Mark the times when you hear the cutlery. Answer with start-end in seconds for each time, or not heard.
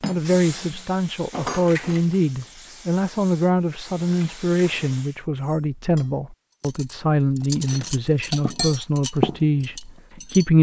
0.0-2.2, 3.9-10.5.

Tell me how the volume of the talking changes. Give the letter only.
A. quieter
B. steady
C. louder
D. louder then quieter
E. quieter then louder
B.